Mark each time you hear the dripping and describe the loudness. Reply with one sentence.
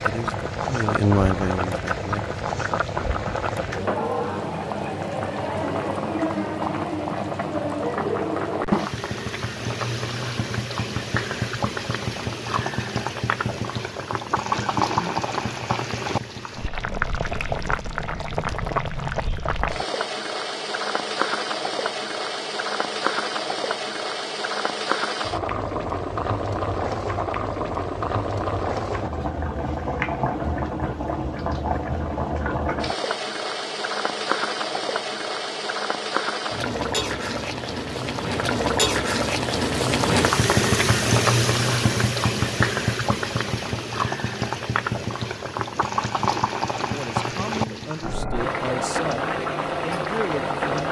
The dripping can't be heard in this clip.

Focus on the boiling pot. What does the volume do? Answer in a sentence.
The volume of the boiling pot stays about the same.